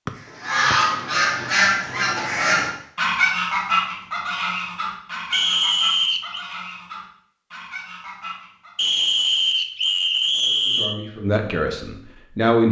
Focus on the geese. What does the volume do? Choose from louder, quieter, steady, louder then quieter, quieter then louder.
quieter.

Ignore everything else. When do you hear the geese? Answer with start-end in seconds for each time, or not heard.
0.3-8.8.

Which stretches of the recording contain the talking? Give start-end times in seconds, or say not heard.
10.4-12.6.